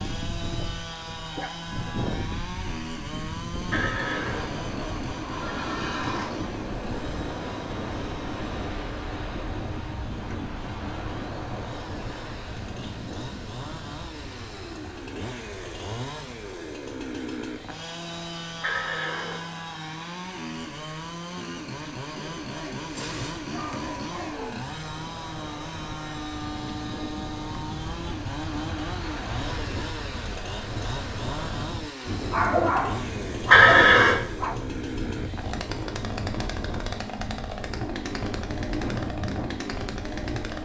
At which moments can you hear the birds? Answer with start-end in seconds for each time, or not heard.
not heard.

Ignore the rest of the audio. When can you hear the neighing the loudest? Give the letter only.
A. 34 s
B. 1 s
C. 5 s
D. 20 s
A.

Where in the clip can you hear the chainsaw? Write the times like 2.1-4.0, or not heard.
0.0-40.6.